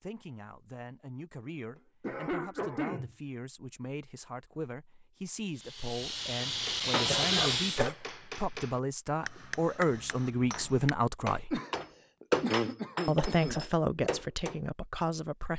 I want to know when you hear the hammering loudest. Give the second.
12 s.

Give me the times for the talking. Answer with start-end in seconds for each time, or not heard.
0.0-11.6, 13.1-15.5.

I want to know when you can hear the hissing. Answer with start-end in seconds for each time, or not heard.
5.5-7.9.